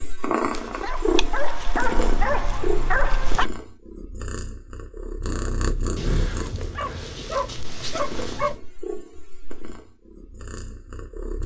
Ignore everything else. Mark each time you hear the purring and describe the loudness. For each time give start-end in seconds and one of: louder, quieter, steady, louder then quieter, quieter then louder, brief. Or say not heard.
0.0-11.4 quieter.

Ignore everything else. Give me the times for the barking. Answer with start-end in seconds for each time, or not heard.
0.5-3.5, 6.0-8.6.